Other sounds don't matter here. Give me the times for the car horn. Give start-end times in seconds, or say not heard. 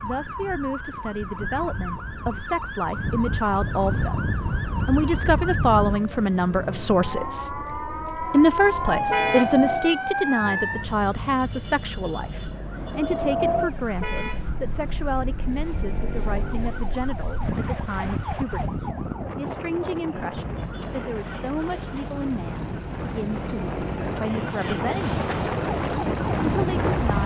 9.1-9.6, 14.0-14.4.